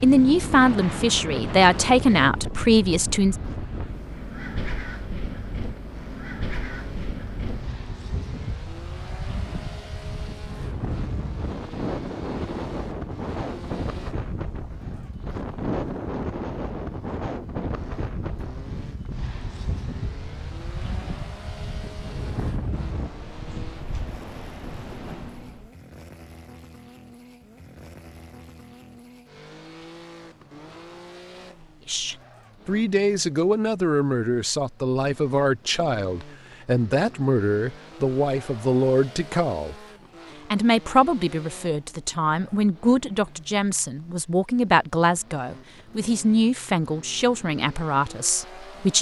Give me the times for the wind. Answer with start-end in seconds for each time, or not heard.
0.0-25.7.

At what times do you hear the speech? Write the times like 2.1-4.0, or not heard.
0.0-3.4, 31.9-39.8, 40.5-48.9.